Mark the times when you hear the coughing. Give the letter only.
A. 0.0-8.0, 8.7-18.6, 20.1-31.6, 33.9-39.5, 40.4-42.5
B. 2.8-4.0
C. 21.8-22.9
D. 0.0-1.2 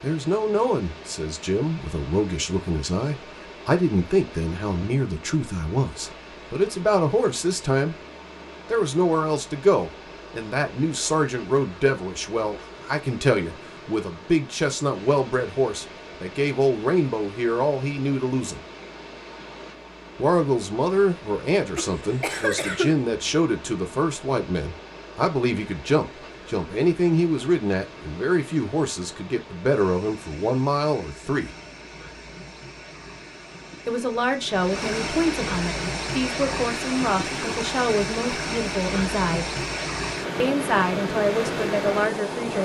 C.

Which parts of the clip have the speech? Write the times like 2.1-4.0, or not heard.
0.0-8.0, 8.7-18.6, 20.1-31.6, 33.9-39.5, 40.4-42.5.